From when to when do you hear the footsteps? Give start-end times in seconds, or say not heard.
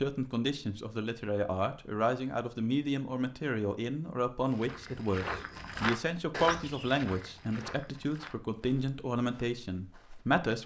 4.5-10.4.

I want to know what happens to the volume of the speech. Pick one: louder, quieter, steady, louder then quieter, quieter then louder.
steady.